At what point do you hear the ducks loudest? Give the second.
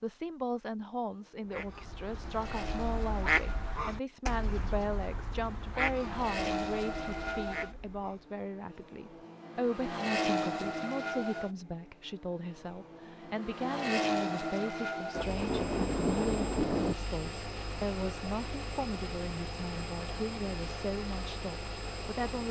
3 s.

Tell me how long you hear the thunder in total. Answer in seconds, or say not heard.
2 s.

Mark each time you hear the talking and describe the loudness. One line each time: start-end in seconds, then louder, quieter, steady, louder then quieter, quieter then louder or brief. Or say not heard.
0.0-22.4 steady.